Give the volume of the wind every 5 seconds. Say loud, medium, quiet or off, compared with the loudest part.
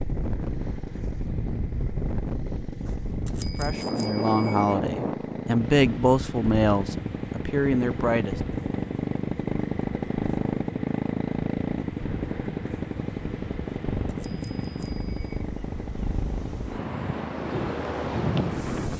loud, medium, medium, loud.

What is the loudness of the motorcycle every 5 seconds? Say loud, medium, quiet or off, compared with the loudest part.
medium, loud, loud, medium.